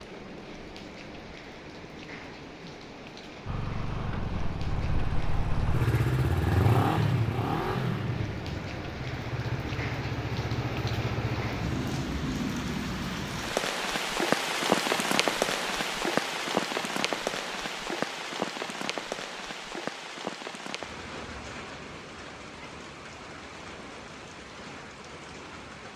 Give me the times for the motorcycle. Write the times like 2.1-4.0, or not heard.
3.5-12.1.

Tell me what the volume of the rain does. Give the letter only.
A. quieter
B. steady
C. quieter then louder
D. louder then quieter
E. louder
D.